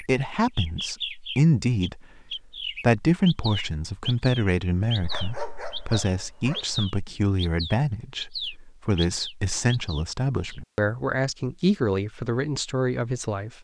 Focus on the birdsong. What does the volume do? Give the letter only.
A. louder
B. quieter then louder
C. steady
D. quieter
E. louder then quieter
C.